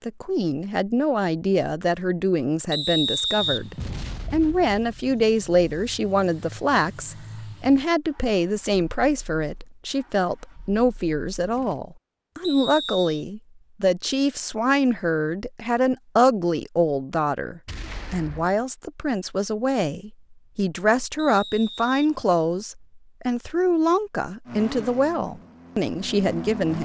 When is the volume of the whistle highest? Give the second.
3 s.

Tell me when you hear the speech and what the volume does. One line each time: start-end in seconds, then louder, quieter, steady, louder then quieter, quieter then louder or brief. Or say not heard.
0.0-26.8 steady.